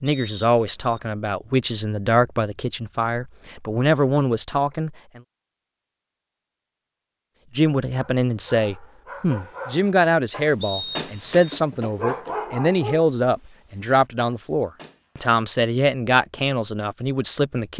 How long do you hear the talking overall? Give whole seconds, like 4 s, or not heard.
15 s.